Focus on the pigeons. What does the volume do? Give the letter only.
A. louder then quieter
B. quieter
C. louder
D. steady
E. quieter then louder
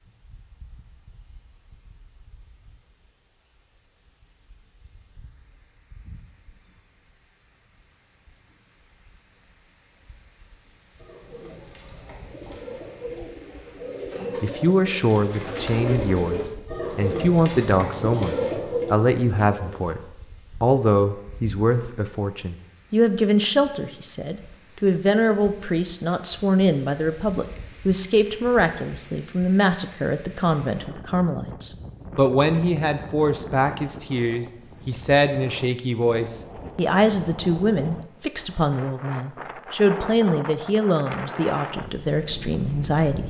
C.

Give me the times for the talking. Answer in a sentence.
You can hear the talking from 14.4 to 43.2 s.